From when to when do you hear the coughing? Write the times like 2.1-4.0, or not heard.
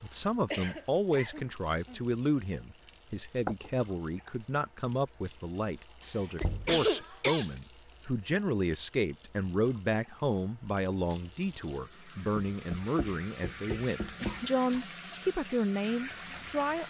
0.5-2.0, 6.0-7.5, 14.2-14.9.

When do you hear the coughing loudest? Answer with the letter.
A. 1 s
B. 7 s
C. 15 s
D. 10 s
B.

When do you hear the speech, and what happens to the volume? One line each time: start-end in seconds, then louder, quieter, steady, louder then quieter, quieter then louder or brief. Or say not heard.
0.0-16.8 steady.